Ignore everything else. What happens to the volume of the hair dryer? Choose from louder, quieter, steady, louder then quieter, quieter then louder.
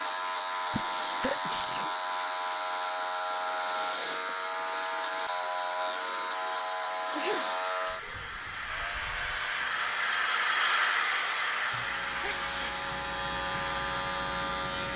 louder then quieter.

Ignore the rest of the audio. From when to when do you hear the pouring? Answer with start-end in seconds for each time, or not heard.
not heard.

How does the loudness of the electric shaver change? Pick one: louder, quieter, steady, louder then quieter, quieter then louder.
quieter then louder.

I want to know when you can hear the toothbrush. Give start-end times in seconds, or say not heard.
not heard.